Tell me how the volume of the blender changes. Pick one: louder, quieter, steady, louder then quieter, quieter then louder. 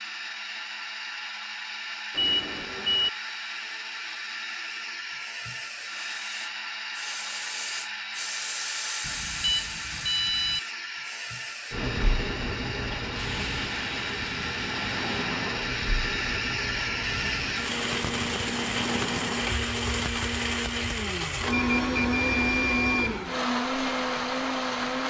louder.